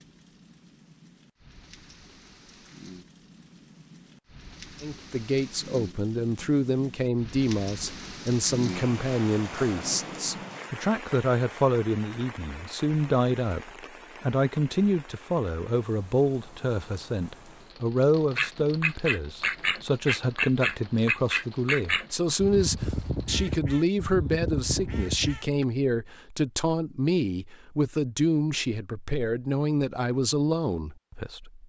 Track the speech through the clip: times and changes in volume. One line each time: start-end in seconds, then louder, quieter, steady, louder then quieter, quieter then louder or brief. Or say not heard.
4.8-31.6 steady.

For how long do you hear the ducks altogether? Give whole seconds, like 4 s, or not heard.
7 s.